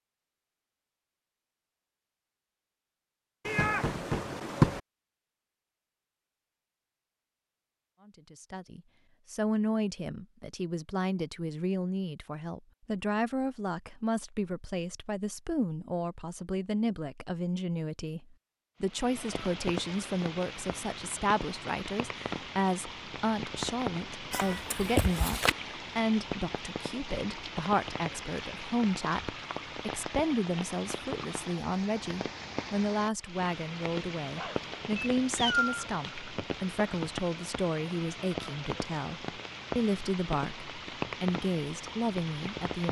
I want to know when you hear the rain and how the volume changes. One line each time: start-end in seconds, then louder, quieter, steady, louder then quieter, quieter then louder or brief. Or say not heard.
18.8-42.8 steady.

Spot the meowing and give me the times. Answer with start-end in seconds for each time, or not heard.
3.5-4.8, 24.3-25.6, 34.4-35.9.